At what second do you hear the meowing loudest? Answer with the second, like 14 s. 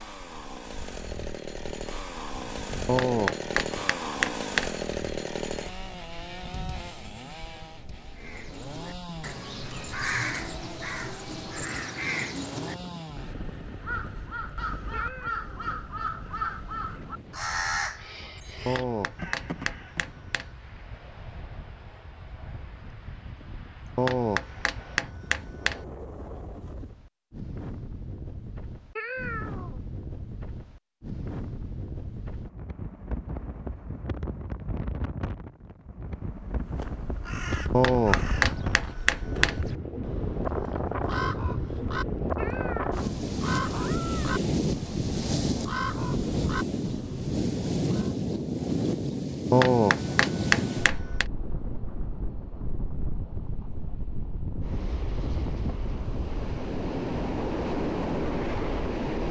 29 s.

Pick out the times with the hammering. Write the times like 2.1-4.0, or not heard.
2.9-4.8, 18.6-20.5, 23.9-25.8, 37.7-39.6, 49.5-51.2.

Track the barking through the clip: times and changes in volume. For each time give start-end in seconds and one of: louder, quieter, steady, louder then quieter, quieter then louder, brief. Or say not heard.
not heard.